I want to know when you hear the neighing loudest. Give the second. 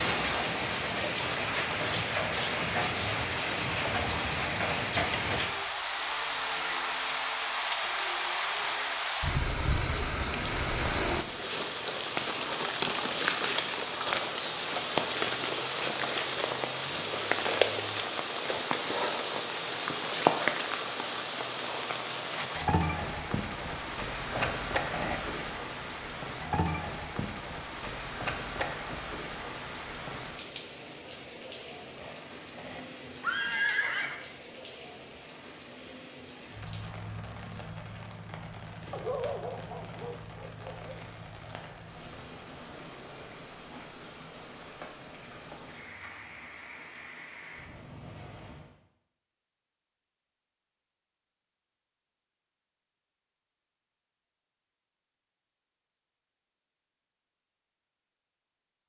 34 s.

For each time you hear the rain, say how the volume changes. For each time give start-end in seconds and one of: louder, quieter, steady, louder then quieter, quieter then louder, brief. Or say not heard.
0.0-48.8 quieter.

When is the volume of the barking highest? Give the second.
39 s.